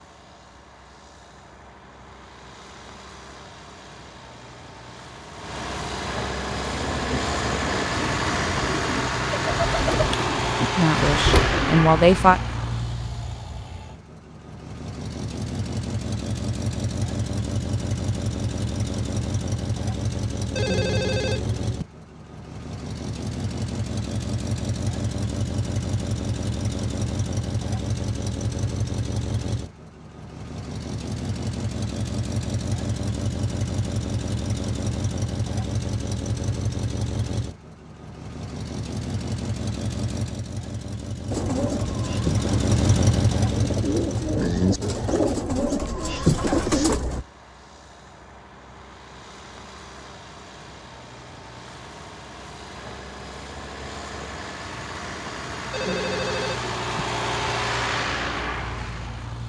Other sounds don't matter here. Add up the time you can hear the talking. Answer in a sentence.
You can hear the talking for 2 seconds altogether.